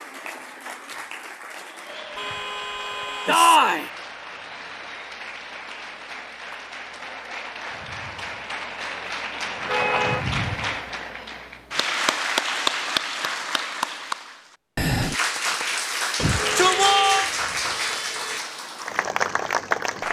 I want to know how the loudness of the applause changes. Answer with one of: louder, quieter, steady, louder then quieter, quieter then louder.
louder.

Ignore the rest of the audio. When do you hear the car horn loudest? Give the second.
10 s.